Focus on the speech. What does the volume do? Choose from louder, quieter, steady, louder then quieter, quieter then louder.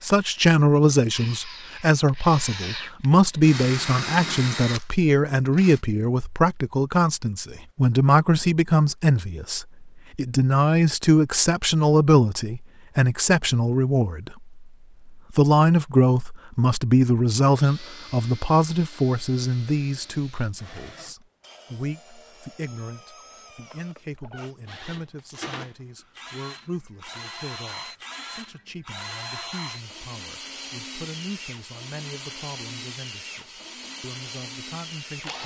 quieter.